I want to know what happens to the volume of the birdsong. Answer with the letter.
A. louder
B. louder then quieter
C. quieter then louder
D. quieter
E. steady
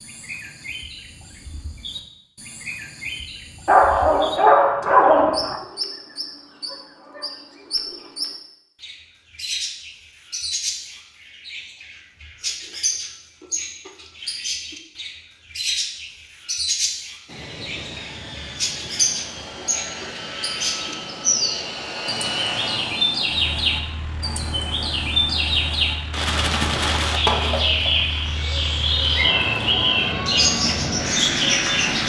A.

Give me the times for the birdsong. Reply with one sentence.
You can hear the birdsong from 0.0 to 32.0 s.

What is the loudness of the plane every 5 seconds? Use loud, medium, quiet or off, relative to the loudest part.
off, off, off, medium, medium, medium, loud.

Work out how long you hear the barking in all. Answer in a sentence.
The barking can be heard for 2 seconds in total.